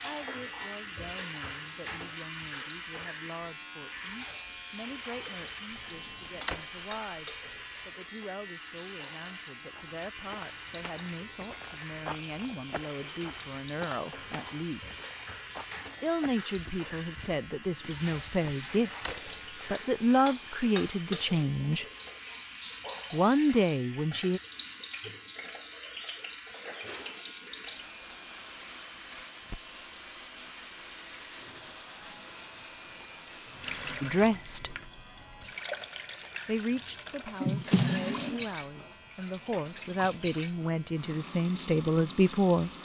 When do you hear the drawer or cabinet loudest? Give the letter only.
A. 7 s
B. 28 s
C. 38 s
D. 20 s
C.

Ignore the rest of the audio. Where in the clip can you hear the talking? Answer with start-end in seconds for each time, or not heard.
0.0-15.0, 16.0-21.9, 23.1-24.4, 34.0-34.8, 36.5-42.7.